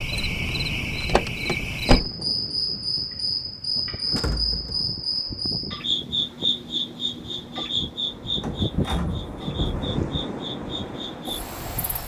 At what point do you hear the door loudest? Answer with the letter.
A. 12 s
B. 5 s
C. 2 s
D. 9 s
C.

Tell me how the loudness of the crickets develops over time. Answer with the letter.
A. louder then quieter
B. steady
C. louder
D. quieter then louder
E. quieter
E.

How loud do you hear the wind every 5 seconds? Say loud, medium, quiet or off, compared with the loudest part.
medium, loud, loud.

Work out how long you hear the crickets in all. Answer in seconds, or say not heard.
12 s.